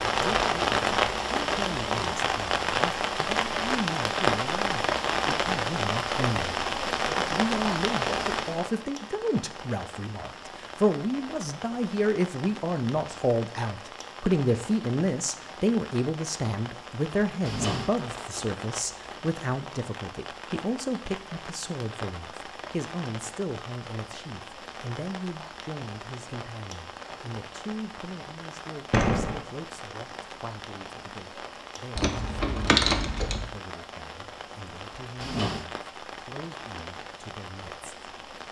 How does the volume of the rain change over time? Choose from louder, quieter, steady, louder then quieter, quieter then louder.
quieter.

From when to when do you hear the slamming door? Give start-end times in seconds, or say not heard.
28.9-29.4.